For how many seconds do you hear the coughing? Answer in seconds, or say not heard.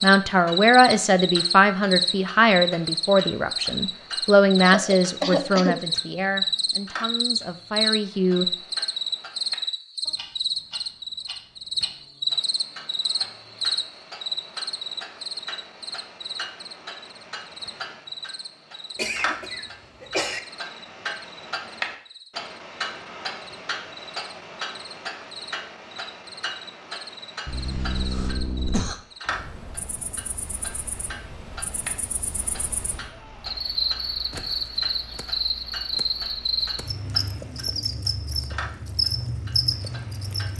4 s.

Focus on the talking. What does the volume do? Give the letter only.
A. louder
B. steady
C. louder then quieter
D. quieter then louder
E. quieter
E.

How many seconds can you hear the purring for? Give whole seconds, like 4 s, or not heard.
not heard.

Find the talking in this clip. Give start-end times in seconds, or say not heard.
0.0-8.4.